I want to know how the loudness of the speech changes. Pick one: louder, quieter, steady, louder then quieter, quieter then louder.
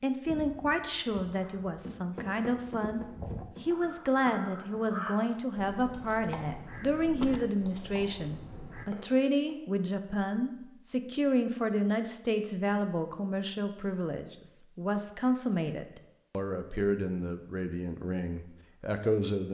steady.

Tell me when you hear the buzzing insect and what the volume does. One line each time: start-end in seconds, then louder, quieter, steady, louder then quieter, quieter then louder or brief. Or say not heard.
not heard.